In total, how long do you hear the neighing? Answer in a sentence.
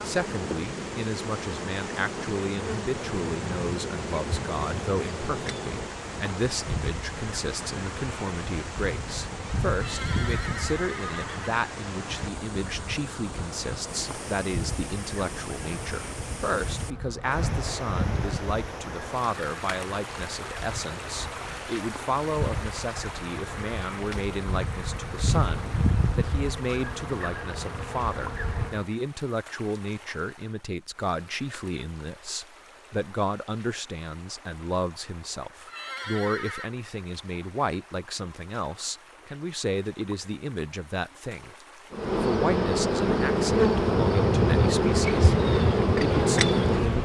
The neighing can be heard for 3 seconds in total.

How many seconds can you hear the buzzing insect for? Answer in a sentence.
You can hear the buzzing insect for 34 seconds altogether.